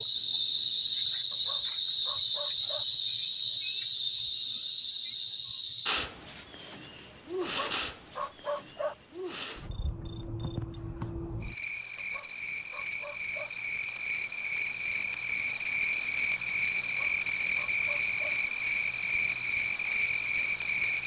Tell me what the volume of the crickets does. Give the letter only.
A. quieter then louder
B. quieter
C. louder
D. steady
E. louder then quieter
A.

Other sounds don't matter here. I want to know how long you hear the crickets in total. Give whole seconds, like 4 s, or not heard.
21 s.